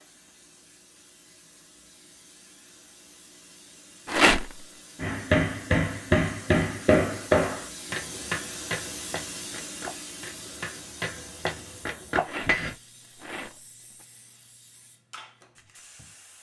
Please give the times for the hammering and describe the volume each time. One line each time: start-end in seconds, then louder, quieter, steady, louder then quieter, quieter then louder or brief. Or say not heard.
5.0-12.8 quieter then louder.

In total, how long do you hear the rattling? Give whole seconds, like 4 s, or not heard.
2 s.